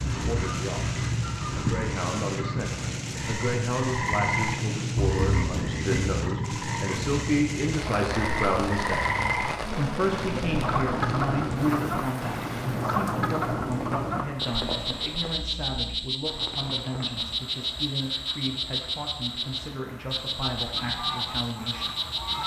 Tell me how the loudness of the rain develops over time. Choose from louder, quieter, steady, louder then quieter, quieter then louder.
quieter.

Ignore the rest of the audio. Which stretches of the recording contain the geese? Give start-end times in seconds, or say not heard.
0.0-2.8, 20.7-22.4.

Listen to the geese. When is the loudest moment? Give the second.
2 s.